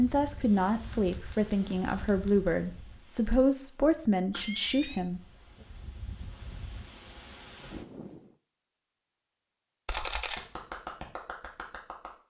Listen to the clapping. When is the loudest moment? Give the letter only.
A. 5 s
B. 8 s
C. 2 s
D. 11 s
D.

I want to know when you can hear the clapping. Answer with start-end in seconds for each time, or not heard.
9.9-12.2.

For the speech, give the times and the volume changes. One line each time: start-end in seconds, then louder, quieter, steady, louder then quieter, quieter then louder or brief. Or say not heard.
0.0-5.2 steady.